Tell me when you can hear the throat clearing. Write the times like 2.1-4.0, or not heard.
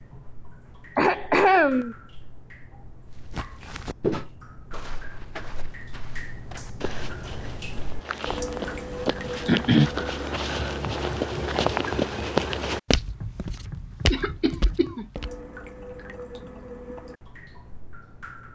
0.9-1.9, 9.1-9.9, 14.1-15.1.